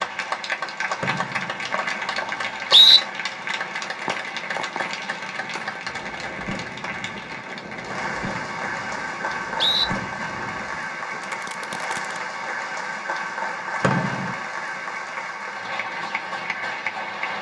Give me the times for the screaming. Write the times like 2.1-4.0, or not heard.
not heard.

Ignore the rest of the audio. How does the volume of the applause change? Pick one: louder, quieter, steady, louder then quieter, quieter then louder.
steady.